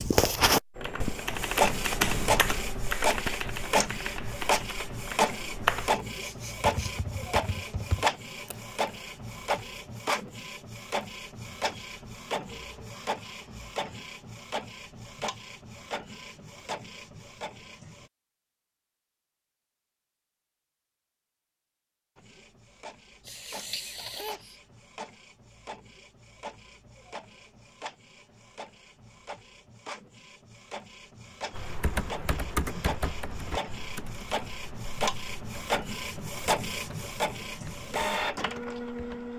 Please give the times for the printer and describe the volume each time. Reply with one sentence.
You can hear the printer from 0.0 to 18.1 s, getting quieter; and from 22.1 to 39.3 s, getting louder.